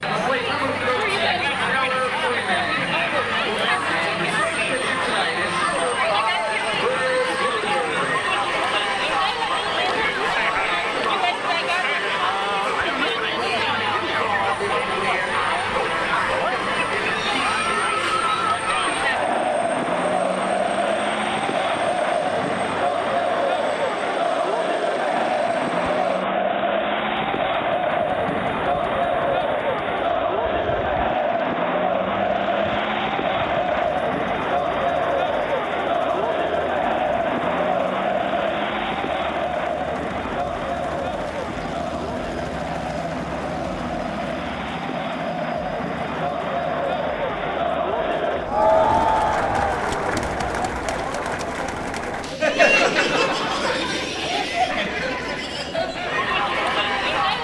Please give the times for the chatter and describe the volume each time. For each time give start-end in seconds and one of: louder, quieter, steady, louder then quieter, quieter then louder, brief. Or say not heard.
0.0-57.3 steady.